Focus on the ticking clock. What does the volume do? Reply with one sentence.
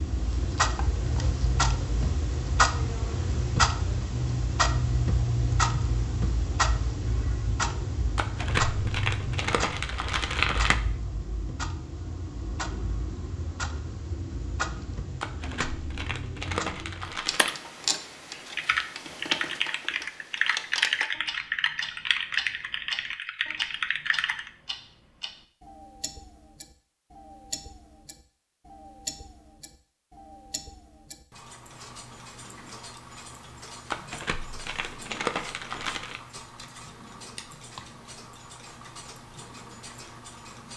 The volume of the ticking clock goes down.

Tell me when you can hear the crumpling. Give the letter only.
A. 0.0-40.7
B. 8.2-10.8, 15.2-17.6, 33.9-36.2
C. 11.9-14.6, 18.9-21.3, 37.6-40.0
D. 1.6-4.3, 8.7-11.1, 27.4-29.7
B.